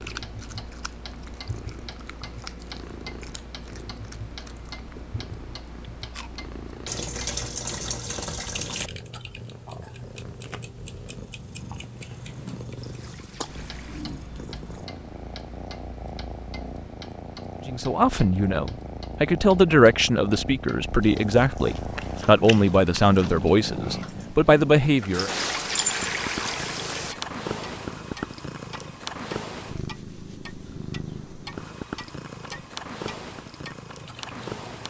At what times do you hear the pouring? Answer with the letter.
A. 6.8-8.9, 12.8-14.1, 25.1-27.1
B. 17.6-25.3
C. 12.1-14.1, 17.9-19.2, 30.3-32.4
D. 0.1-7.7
A.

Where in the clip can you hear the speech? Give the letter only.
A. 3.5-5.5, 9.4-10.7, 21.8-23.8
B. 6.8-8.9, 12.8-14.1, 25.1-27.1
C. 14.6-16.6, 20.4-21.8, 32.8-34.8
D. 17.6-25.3
D.